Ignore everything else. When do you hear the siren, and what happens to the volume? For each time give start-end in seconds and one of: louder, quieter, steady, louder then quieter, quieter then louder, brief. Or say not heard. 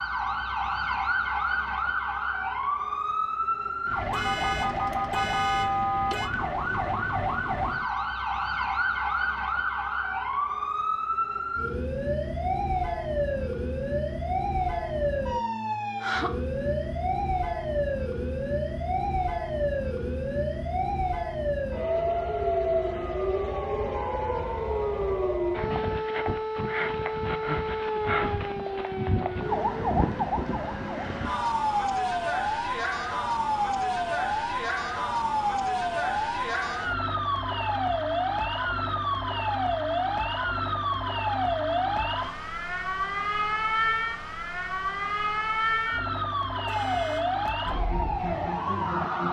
0.0-49.2 steady.